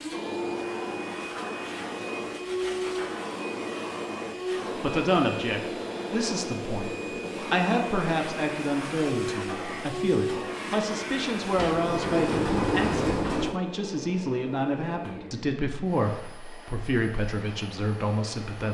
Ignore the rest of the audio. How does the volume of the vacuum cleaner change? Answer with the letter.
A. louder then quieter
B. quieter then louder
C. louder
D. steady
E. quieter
E.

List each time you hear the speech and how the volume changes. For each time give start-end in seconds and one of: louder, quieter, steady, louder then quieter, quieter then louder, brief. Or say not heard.
4.8-18.6 steady.